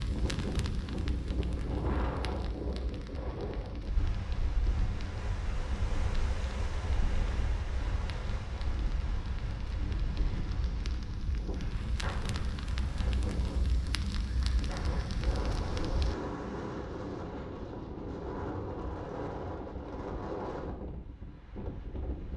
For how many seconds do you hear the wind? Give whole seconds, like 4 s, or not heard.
22 s.